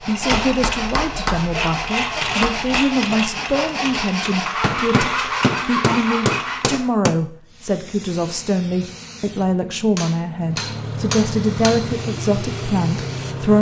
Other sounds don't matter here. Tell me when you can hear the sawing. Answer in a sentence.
You can hear the sawing from 0.0 to 6.8 s.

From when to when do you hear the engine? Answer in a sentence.
You can hear the engine from 10.4 to 13.5 s.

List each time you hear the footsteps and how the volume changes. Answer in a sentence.
The footsteps can't be heard in this clip.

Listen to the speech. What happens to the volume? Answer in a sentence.
The loudness of the speech stays about the same.